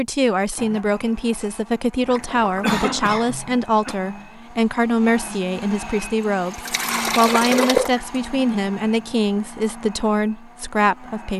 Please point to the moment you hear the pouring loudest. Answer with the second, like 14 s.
8 s.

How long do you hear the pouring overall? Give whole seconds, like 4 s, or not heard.
3 s.